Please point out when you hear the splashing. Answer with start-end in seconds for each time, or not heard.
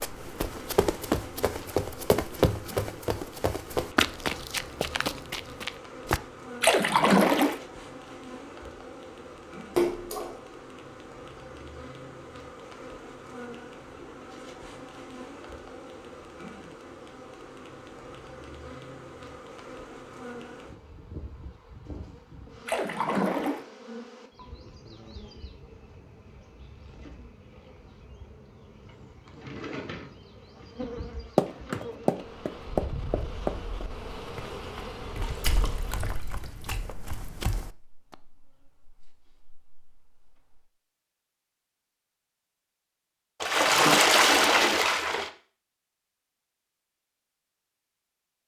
6.6-7.6, 9.8-10.3, 22.6-23.6, 35.2-36.8, 43.4-45.3.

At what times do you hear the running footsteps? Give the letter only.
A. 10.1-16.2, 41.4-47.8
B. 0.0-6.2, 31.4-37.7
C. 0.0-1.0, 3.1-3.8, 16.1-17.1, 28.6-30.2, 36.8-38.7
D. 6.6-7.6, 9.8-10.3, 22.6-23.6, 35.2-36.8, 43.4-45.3
B.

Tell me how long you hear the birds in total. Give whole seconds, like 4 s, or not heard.
not heard.